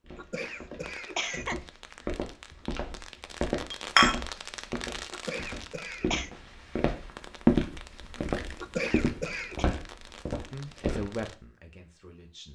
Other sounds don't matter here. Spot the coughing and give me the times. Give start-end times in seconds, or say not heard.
0.1-1.6, 5.1-6.3, 8.6-9.7.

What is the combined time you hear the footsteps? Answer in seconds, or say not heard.
11 s.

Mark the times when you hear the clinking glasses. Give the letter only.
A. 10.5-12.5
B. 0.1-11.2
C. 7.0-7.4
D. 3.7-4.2
D.